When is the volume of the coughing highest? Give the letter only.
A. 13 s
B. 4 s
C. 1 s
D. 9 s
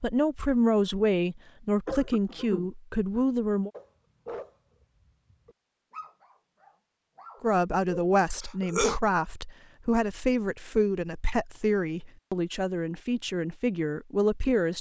D.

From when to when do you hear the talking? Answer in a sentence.
You can hear the talking from 0.0 to 3.7 s and from 7.4 to 14.7 s.